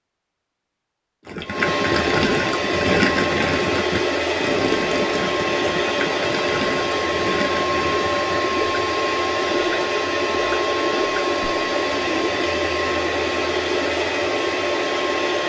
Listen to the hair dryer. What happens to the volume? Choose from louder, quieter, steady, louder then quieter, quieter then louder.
steady.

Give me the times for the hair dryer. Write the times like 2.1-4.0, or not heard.
1.4-15.4.